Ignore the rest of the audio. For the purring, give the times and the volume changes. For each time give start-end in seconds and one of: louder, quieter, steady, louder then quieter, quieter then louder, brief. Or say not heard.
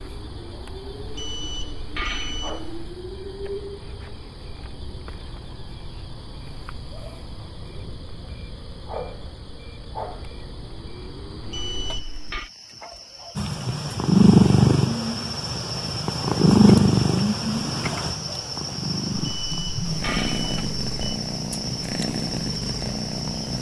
13.3-23.5 quieter.